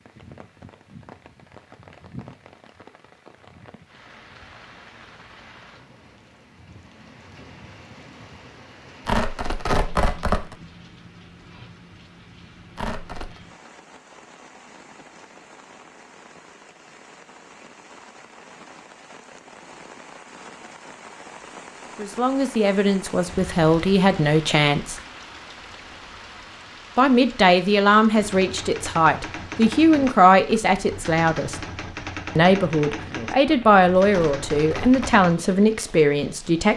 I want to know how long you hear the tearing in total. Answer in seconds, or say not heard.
3 s.